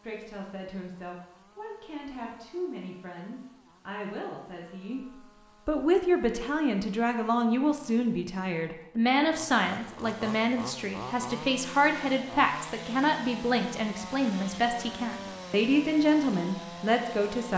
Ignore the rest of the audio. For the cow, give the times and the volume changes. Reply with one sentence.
You can't hear the cow here.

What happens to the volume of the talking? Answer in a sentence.
The loudness of the talking goes up.